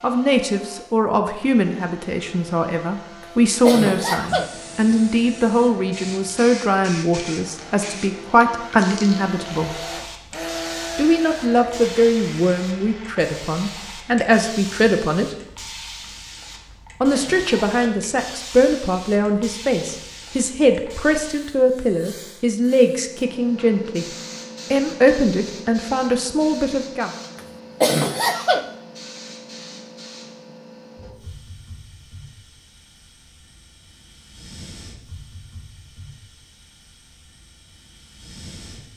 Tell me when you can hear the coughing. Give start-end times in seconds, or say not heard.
3.2-4.5, 16.7-17.8, 27.4-28.7.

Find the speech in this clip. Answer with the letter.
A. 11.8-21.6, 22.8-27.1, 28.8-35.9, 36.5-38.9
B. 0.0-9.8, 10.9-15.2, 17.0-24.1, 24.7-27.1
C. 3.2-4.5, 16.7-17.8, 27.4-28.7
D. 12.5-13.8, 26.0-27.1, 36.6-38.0
B.